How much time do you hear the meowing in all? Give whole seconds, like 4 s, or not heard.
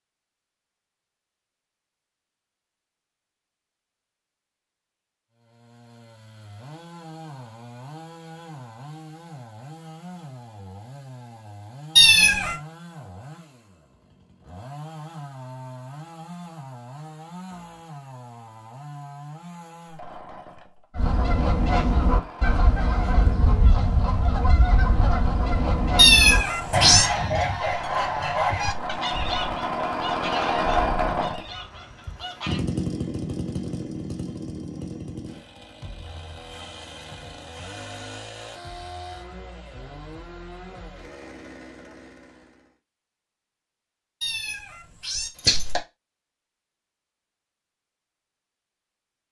3 s.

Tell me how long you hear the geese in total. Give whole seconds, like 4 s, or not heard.
12 s.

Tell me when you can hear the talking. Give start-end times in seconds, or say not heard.
not heard.